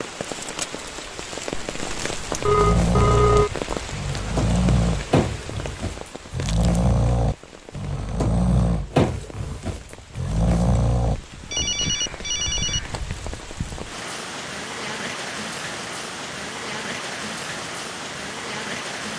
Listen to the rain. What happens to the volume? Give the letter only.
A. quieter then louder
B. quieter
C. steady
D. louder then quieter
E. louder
A.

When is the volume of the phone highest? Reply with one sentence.
The volume of the phone peaks at 3 seconds.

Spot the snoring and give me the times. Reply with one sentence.
The snoring can be heard from 2.4 to 11.2 s.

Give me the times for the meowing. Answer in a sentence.
You can't hear the meowing here.